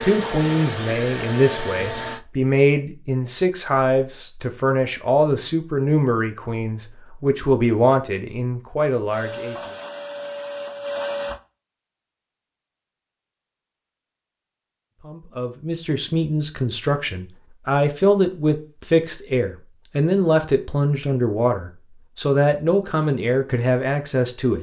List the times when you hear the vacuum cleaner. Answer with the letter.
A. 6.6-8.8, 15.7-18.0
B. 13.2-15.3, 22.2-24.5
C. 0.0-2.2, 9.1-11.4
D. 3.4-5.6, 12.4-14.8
C.